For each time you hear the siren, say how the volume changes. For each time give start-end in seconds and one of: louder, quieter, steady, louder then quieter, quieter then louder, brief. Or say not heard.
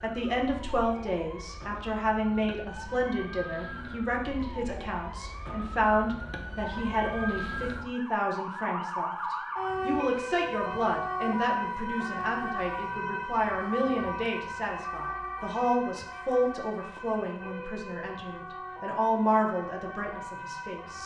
0.0-21.0 louder then quieter.